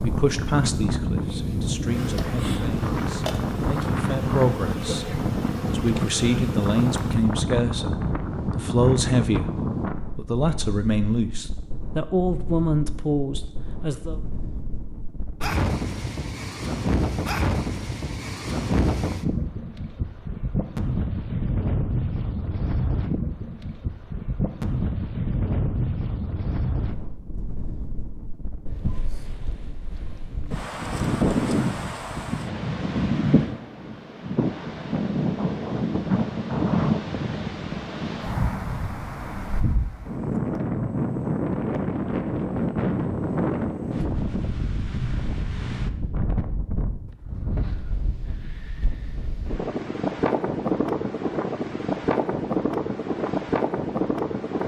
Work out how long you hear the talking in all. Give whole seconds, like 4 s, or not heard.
13 s.